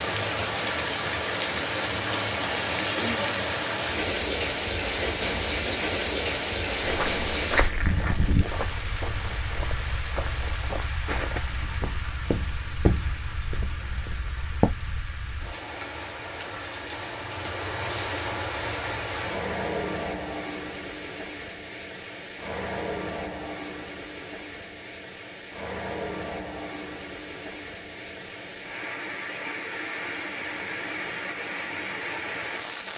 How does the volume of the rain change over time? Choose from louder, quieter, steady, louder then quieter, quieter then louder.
quieter.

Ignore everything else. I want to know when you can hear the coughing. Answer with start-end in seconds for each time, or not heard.
not heard.